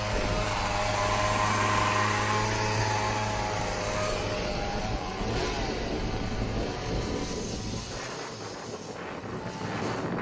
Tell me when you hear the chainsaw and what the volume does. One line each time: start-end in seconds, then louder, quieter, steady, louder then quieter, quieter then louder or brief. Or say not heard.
0.0-10.1 quieter.